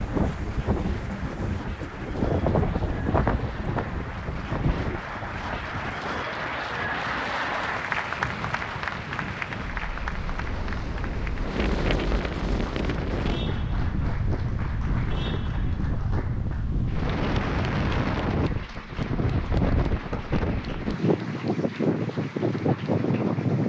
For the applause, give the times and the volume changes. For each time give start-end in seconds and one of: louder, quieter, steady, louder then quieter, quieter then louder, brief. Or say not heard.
0.0-23.6 louder then quieter.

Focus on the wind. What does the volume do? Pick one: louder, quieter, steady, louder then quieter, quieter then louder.
quieter then louder.